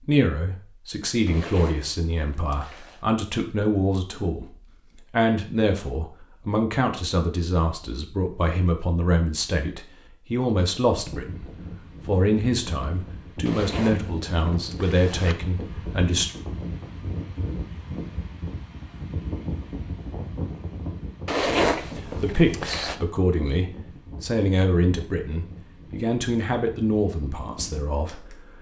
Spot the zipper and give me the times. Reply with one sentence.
The zipper can be heard from 1.2 to 3.0 s, from 13.4 to 15.3 s and from 21.2 to 22.9 s.